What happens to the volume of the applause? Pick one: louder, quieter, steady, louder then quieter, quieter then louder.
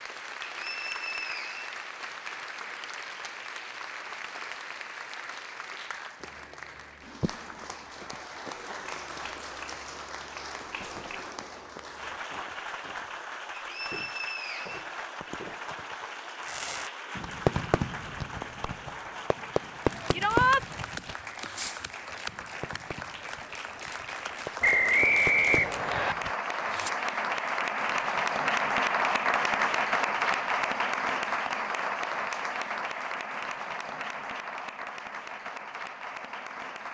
louder.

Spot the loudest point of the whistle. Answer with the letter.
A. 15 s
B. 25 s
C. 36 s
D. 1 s
B.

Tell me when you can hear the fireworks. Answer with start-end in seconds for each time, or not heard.
16.4-26.9.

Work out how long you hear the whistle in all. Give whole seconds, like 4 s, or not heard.
4 s.